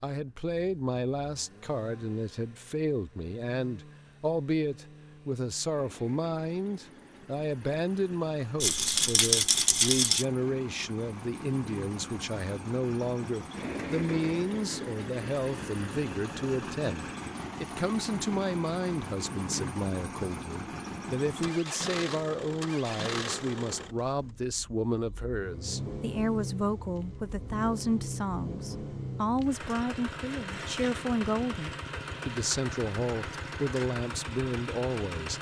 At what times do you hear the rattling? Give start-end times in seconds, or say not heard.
8.6-10.2.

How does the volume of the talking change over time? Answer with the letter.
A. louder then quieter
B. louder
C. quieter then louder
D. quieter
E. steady
E.